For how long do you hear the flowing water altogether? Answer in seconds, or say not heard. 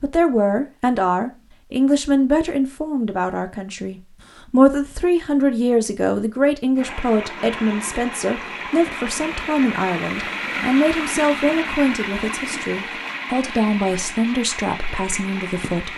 9 s.